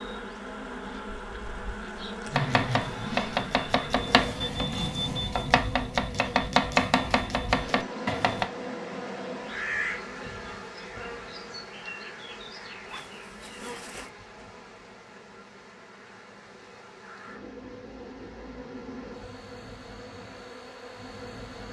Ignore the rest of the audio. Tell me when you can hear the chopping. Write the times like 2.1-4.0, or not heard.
2.3-8.5.